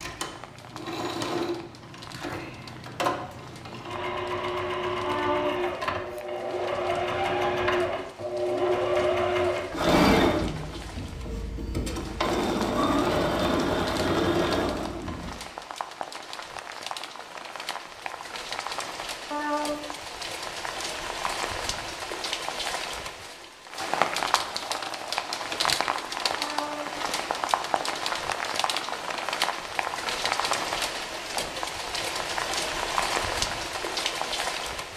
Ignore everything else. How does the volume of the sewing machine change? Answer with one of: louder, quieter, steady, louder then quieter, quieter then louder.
louder.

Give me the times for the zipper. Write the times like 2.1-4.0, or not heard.
not heard.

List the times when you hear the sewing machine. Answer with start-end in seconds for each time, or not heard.
0.0-15.3.